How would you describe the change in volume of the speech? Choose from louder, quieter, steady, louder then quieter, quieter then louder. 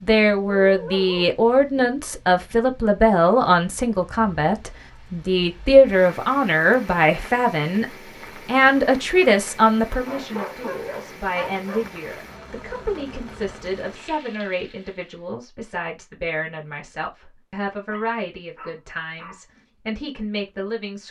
quieter.